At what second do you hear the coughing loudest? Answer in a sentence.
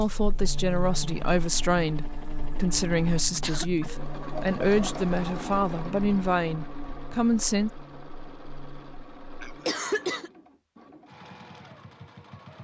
The loudest moment of the coughing is at 10 seconds.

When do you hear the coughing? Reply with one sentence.
You can hear the coughing from 3.1 to 3.6 s and from 9.4 to 10.3 s.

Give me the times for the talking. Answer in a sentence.
The talking can be heard from 0.0 to 7.7 s.